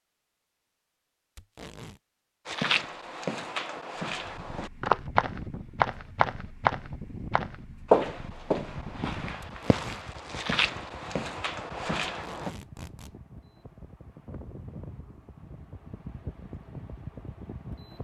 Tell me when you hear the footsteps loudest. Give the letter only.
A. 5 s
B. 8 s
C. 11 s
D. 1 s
B.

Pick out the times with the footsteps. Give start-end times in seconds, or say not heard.
2.5-12.5.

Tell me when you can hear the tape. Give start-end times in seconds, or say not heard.
1.4-2.0, 9.4-10.1, 12.1-13.2.